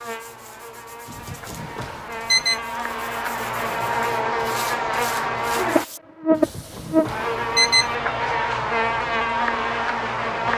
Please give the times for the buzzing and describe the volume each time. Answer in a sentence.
You can hear the buzzing from 0.0 to 10.5 s, getting louder.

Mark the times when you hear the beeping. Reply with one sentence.
The beeping can be heard from 1.1 to 2.6 s and from 6.3 to 7.9 s.